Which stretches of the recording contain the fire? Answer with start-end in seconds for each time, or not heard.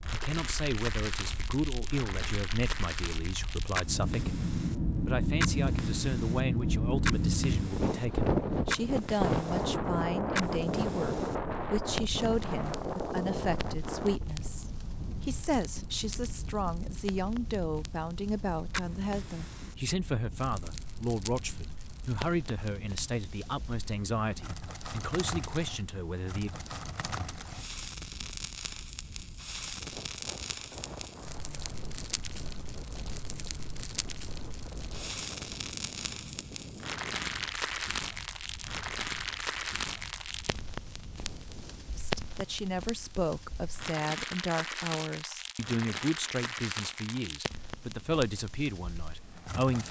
0.0-49.8.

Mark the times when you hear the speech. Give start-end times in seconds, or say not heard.
0.1-26.5, 42.0-49.8.